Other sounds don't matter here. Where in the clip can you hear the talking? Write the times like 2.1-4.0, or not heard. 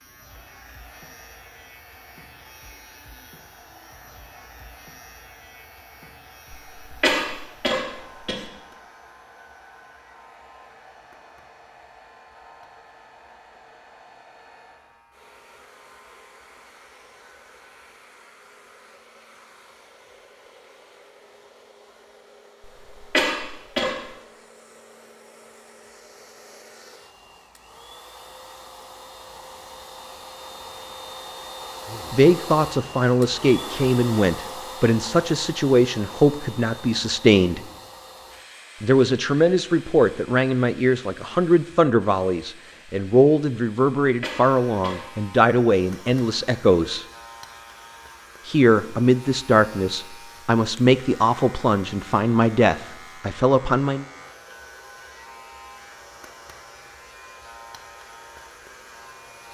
32.1-37.6, 38.8-47.0, 48.5-54.0.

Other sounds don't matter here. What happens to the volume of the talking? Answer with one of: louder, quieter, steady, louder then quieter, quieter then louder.
steady.